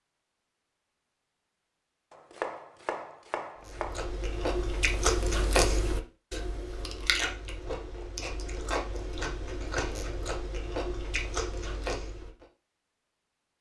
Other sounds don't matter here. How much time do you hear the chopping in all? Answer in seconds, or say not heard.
2 s.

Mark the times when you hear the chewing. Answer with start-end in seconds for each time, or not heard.
3.6-12.4.